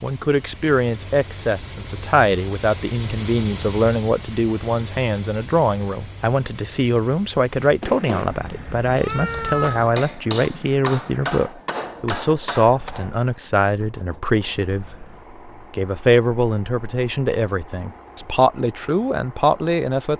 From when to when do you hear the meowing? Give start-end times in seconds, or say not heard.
8.3-9.9.